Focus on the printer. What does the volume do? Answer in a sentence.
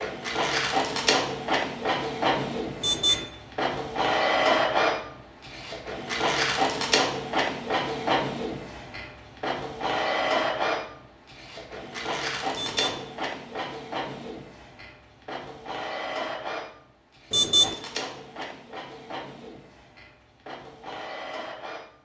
The volume of the printer goes down.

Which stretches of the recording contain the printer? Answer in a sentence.
The printer can be heard from 0.0 to 21.9 s.